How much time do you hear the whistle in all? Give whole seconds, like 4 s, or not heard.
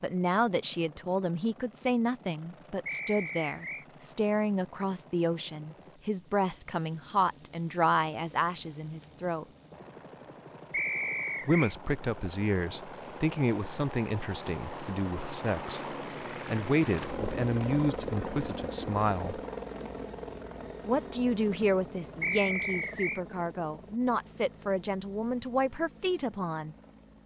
3 s.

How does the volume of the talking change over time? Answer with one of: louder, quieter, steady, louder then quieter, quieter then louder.
steady.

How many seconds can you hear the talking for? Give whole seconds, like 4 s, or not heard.
23 s.